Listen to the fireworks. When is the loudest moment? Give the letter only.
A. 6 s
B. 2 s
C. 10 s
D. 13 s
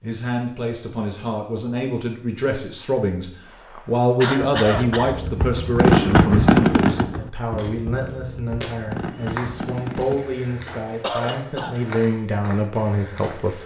A.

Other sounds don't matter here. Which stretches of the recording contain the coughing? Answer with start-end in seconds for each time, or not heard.
3.8-5.2, 11.0-11.8.